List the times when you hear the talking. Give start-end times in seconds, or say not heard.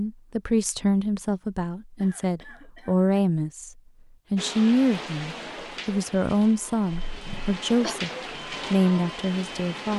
0.0-3.7, 4.3-9.9.